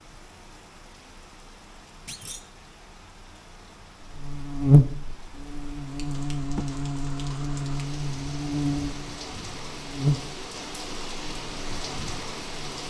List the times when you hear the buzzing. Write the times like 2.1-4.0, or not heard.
4.0-12.8.